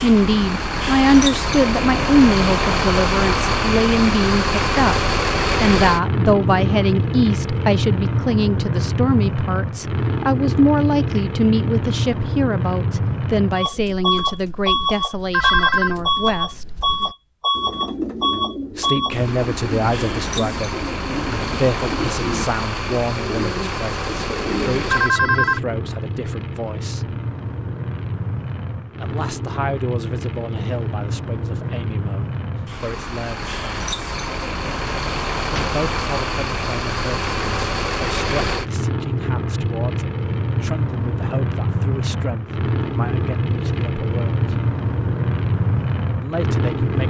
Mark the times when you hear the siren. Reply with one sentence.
You can't hear the siren here.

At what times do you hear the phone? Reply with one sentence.
You can hear the phone from 15.3 to 16.0 s and from 24.9 to 25.6 s.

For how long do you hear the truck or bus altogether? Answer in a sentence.
You can hear the truck or bus for 47 seconds altogether.